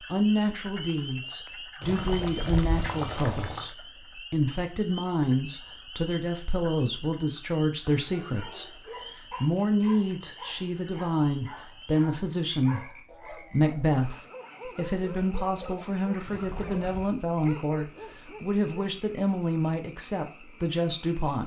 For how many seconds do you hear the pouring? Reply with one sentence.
You can hear the pouring for 3 seconds altogether.